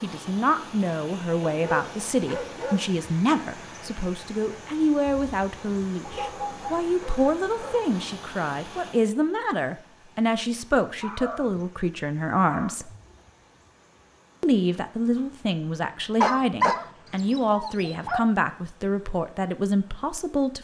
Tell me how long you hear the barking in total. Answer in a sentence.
The barking can be heard for 7 seconds in total.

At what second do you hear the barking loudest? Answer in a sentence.
The loudest moment of the barking is at 17 seconds.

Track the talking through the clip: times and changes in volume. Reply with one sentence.
You can hear the talking from 0.0 to 12.9 s, at a steady volume; and from 14.4 to 20.5 s, at a steady volume.